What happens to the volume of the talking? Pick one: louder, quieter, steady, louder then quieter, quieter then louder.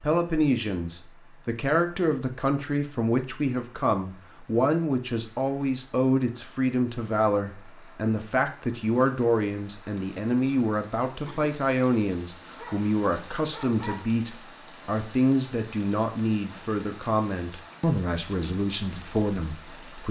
steady.